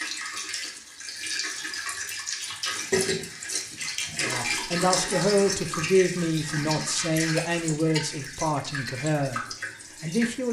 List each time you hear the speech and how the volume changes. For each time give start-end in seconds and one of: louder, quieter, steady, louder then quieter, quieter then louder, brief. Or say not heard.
4.2-9.4 quieter
10.0-10.4 brief.